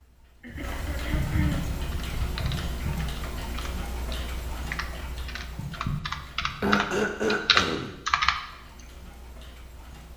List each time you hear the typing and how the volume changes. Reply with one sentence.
The typing can be heard from 1.9 to 8.4 s, getting louder.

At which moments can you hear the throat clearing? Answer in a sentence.
You can hear the throat clearing from 0.4 to 1.6 s and from 6.6 to 8.0 s.